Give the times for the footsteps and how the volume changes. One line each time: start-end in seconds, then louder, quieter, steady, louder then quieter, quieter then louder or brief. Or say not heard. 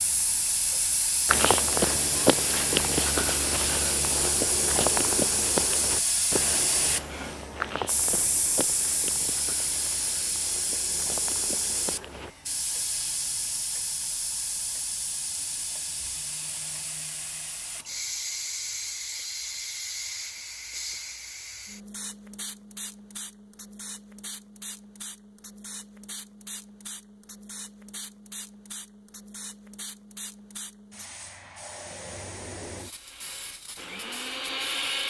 1.2-12.3 quieter.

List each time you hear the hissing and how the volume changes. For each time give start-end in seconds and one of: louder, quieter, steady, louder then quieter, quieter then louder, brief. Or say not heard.
0.0-35.0 quieter.